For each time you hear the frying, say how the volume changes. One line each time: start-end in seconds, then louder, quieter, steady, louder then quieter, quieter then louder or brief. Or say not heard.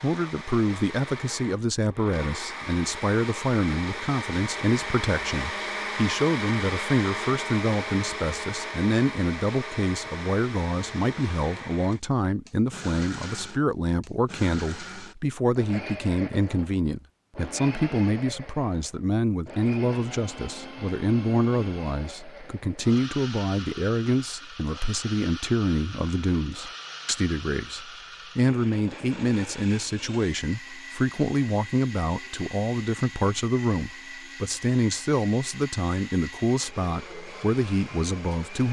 not heard.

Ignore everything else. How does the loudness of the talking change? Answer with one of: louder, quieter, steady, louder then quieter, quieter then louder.
steady.